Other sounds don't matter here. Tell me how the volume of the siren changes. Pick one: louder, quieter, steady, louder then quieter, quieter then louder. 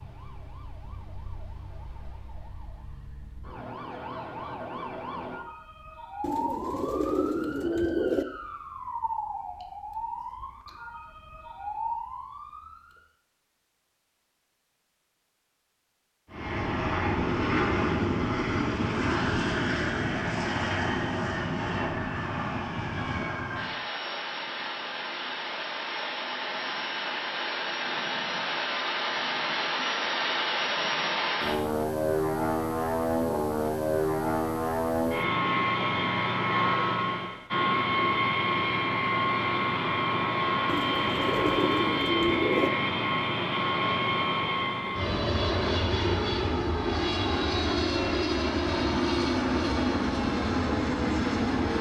louder.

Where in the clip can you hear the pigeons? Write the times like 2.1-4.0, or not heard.
6.2-8.2, 40.6-42.7.